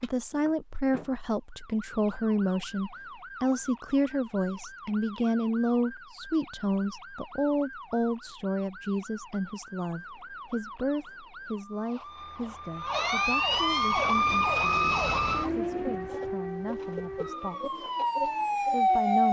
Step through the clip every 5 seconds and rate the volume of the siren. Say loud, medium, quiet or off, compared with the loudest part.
quiet, quiet, loud, loud.